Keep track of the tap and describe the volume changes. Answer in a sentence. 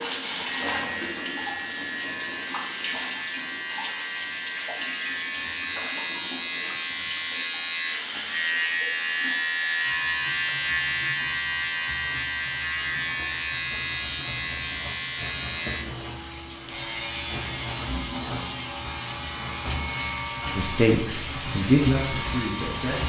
The volume of the tap goes down, then up.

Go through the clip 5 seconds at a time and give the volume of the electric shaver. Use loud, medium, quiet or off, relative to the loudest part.
medium, loud, loud, medium, medium.